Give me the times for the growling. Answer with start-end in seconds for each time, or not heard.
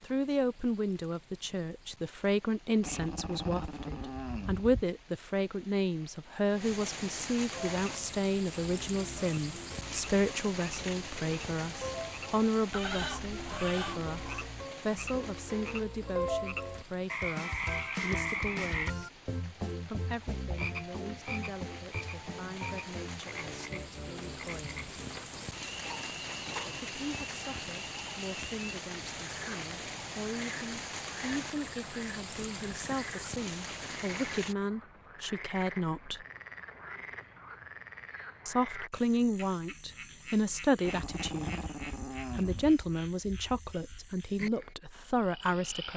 2.8-4.8, 18.1-18.9, 40.8-42.8.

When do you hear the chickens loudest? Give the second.
13 s.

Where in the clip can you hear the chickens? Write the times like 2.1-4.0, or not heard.
12.7-14.4, 25.3-26.9.